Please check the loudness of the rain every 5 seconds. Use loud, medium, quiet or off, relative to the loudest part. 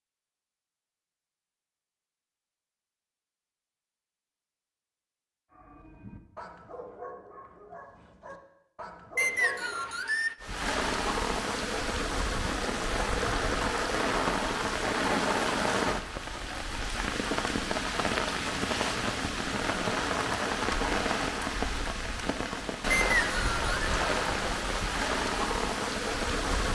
off, off, loud, loud, loud, loud.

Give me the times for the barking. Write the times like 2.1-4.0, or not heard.
5.5-10.1.